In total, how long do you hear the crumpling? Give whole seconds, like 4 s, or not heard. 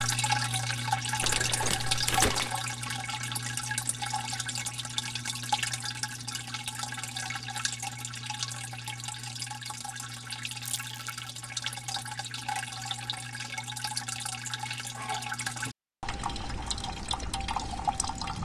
2 s.